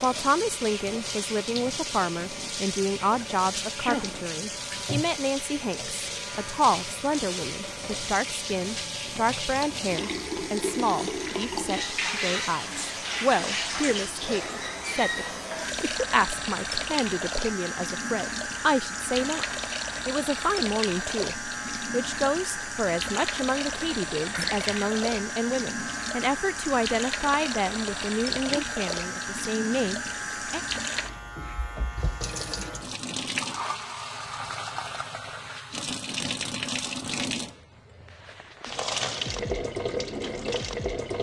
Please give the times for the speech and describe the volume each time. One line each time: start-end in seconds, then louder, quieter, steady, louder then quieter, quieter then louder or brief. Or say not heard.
0.0-30.6 steady.